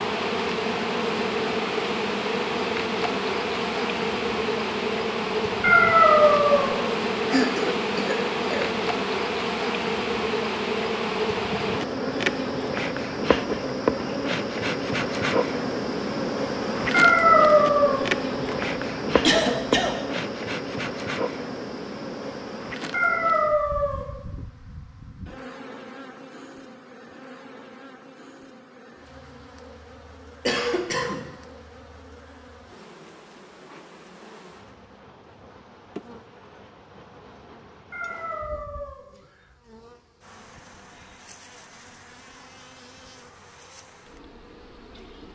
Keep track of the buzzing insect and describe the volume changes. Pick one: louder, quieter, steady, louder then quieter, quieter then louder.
quieter.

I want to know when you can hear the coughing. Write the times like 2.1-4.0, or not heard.
7.3-8.8, 18.3-19.9, 30.4-31.2.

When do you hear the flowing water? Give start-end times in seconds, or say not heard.
not heard.